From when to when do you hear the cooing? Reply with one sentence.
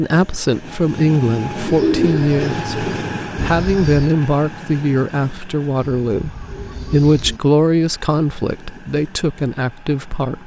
You can hear the cooing from 1.6 to 4.2 s and from 5.8 to 7.4 s.